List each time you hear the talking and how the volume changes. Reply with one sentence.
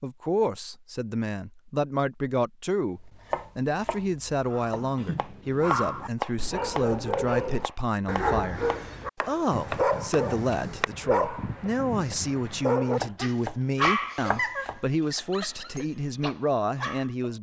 The talking can be heard from 0.0 to 17.3 s, at a steady volume.